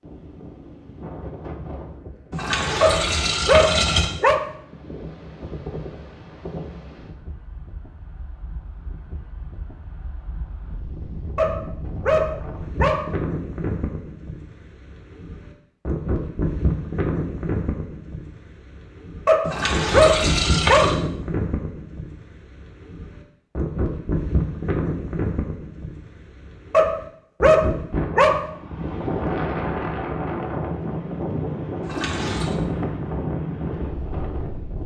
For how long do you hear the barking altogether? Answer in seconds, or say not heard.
7 s.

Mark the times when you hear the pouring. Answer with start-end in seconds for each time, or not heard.
2.3-4.0, 19.4-20.9, 31.8-32.5.